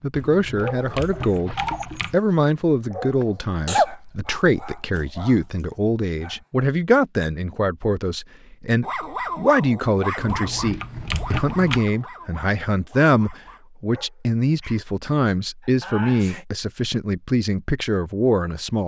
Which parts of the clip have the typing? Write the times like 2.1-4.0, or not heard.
0.1-2.1, 10.2-11.8.